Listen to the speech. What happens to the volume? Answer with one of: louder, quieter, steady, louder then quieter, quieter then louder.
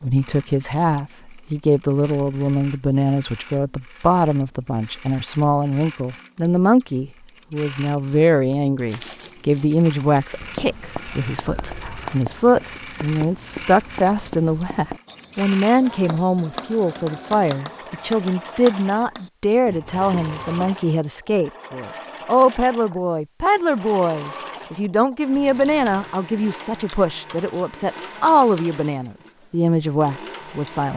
steady.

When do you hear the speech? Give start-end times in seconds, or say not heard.
0.0-30.9.